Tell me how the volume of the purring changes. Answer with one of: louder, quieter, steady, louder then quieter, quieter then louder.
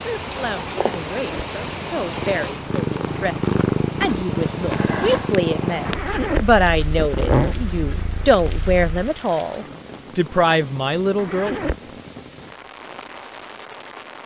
louder then quieter.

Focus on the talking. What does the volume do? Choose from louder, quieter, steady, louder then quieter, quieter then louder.
louder.